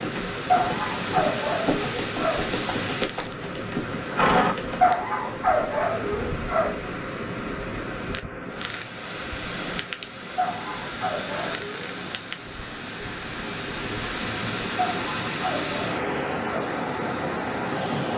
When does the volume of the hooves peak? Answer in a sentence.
The volume of the hooves peaks at 4 seconds.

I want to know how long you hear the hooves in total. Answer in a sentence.
You can hear the hooves for 5 seconds altogether.